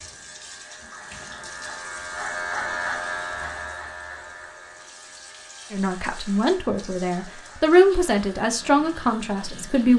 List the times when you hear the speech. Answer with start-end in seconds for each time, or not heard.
5.7-9.9.